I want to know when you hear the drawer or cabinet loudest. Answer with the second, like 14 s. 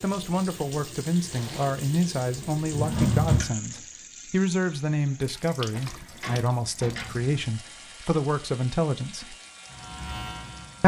3 s.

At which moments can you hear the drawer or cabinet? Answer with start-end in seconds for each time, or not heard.
2.4-3.5, 6.2-7.3.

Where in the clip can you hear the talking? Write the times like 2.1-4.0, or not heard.
0.0-9.3.